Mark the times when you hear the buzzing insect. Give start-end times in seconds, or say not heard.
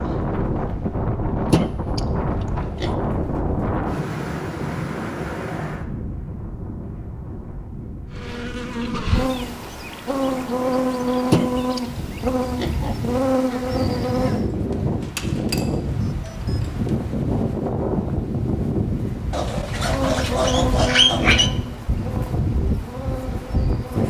8.1-14.5, 19.9-24.0.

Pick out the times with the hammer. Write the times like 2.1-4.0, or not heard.
14.7-17.0.